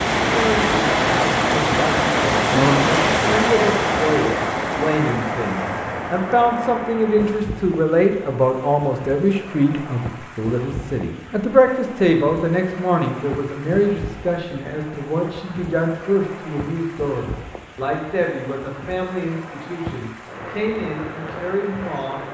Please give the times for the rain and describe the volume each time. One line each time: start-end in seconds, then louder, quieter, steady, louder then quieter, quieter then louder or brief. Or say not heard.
0.0-22.2 quieter.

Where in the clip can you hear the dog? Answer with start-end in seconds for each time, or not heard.
not heard.